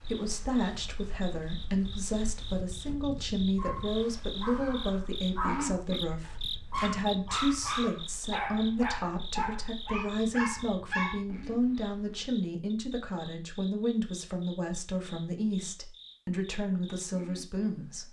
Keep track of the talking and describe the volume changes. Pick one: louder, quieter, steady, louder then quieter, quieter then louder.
steady.